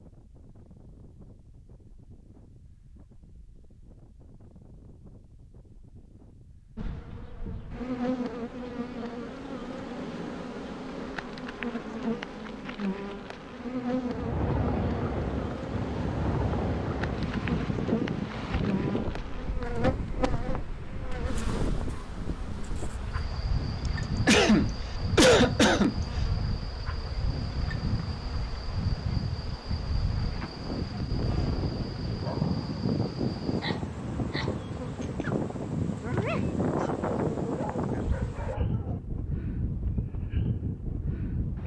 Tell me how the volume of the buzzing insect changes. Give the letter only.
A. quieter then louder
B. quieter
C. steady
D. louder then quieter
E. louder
B.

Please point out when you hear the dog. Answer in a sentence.
The dog can be heard from 32.1 to 35.4 s and from 36.0 to 39.2 s.